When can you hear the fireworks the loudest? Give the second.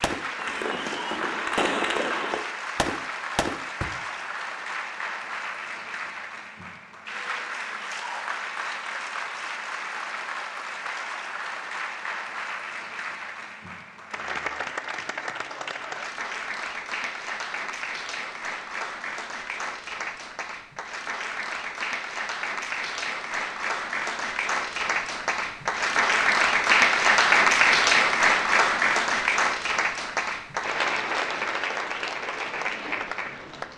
2 s.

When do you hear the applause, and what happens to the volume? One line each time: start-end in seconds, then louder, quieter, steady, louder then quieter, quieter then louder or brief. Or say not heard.
0.0-33.7 louder.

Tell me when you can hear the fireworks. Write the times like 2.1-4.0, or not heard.
0.0-3.9.